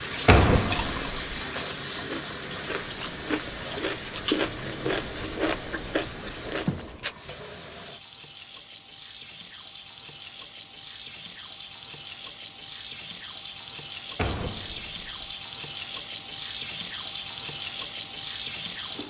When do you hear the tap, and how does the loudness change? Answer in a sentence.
The tap can be heard from 0.0 to 19.0 s, getting quieter then louder.